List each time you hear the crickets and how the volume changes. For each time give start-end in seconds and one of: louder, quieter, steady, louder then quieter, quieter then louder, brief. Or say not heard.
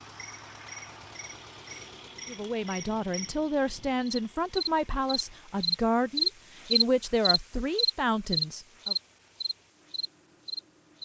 0.1-11.0 louder then quieter.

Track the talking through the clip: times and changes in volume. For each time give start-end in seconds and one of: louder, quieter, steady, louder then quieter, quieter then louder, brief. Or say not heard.
2.2-8.9 steady.